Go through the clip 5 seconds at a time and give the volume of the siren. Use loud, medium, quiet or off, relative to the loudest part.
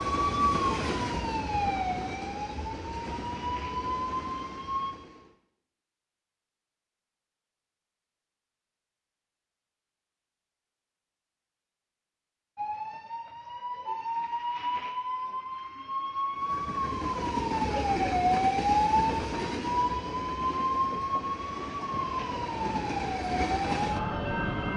loud, off, medium, loud, loud.